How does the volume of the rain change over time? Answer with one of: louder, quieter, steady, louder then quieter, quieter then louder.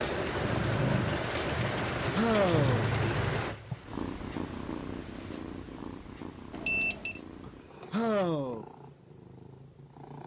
quieter.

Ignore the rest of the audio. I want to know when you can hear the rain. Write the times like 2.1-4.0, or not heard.
0.0-5.5.